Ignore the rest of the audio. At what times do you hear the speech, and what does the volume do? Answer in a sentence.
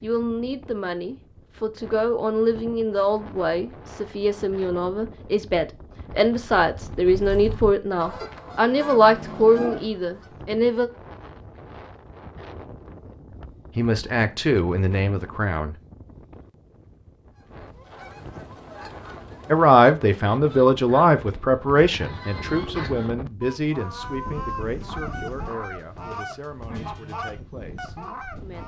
The speech can be heard from 0.0 to 10.9 s, getting louder; briefly from 13.8 to 15.8 s; and from 19.5 to 28.6 s, getting quieter.